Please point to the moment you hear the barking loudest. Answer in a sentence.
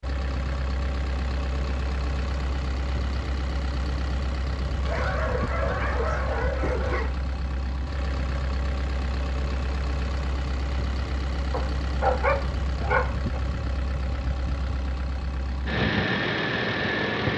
The volume of the barking peaks at 12 seconds.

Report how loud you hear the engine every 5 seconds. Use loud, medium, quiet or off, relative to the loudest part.
medium, medium, medium, loud.